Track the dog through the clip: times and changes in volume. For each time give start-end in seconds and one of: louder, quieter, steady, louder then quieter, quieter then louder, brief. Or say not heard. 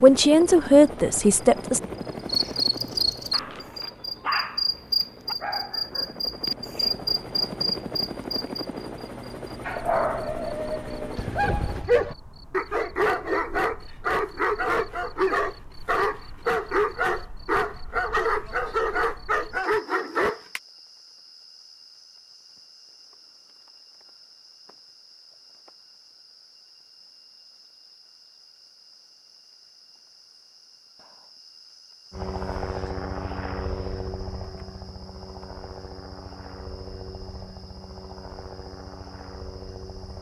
3.3-6.2 brief
9.7-20.6 steady.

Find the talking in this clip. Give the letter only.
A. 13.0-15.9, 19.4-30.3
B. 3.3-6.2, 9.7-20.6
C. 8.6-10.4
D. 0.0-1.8
D.